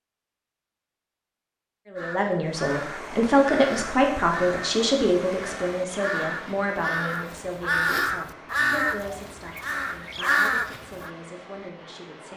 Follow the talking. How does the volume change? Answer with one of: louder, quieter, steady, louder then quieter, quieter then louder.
quieter.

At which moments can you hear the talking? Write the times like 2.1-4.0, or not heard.
1.9-12.3.